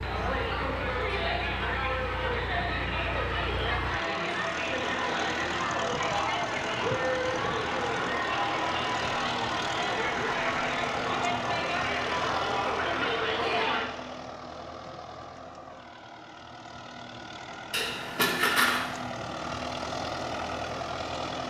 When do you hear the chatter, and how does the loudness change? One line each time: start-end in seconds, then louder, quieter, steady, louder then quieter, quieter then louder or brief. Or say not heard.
0.0-13.8 steady.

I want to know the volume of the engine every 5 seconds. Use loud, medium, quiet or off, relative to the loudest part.
medium, loud, loud, medium, loud.